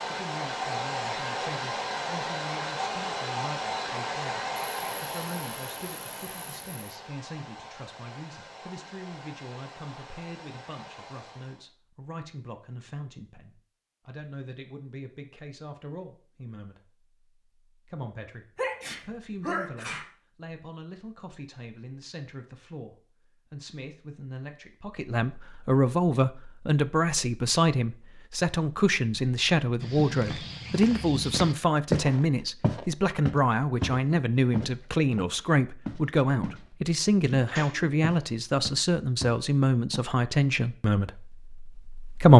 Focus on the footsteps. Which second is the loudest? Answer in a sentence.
The volume of the footsteps peaks at 32 seconds.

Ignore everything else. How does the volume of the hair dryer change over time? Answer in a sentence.
The loudness of the hair dryer goes down.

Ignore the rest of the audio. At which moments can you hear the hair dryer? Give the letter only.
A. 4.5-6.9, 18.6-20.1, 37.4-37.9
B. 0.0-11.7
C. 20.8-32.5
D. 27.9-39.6
B.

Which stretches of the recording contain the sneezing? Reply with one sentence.
The sneezing can be heard from 4.5 to 6.9 s, from 18.6 to 20.1 s and from 37.4 to 37.9 s.